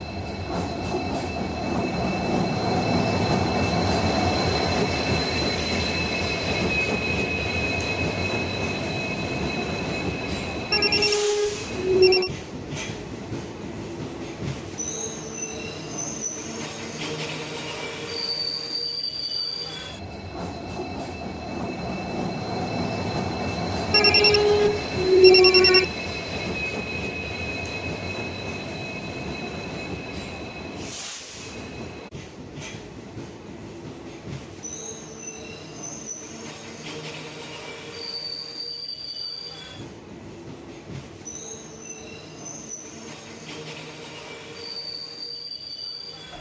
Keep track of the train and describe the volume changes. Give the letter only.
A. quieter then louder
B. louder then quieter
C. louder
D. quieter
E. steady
D.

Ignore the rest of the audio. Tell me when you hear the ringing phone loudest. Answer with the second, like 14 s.
25 s.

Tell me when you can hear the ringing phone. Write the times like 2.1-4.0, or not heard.
10.7-12.3, 23.9-25.9.